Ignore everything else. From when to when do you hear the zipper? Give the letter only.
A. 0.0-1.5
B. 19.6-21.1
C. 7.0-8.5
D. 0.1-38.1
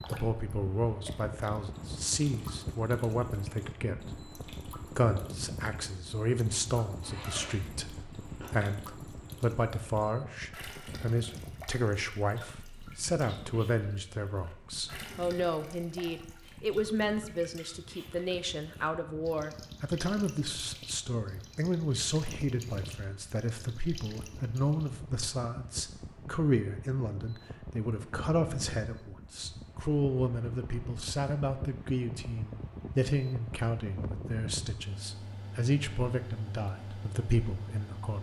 C.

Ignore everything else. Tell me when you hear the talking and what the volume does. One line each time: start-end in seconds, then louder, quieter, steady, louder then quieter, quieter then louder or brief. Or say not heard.
0.1-38.1 steady.